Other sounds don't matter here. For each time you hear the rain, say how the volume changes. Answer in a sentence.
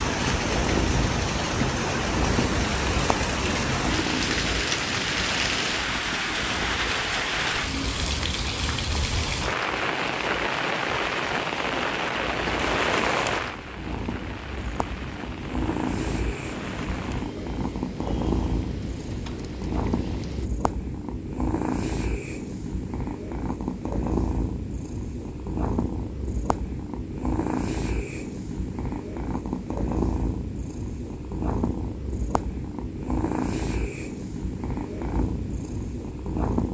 You can hear the rain from 0.0 to 20.5 s, getting quieter.